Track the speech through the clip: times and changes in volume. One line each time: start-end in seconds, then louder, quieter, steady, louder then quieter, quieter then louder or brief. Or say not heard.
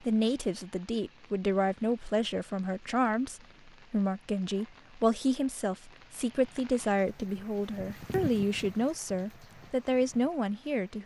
0.0-11.0 steady.